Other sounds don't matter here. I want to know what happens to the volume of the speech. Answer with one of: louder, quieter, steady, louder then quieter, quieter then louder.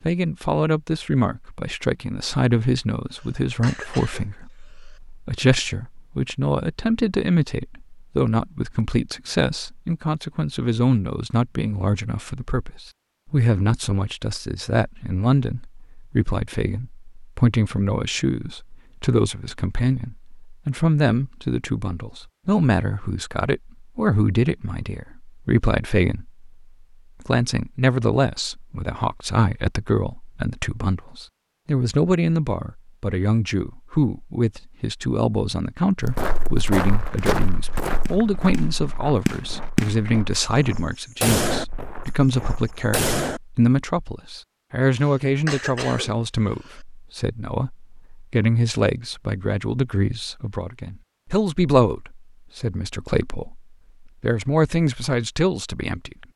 steady.